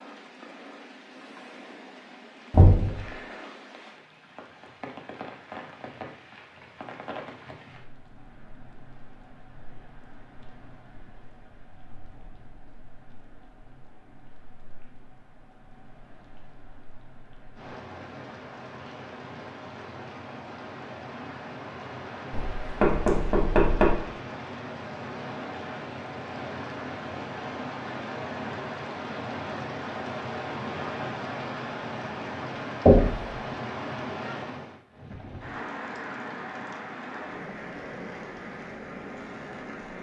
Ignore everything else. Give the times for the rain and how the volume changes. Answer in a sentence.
The rain can be heard from 0.0 to 39.9 s, getting quieter then louder.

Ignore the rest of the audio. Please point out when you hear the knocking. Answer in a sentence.
The knocking can be heard from 2.5 to 3.0 s, from 22.3 to 23.9 s and from 32.9 to 33.3 s.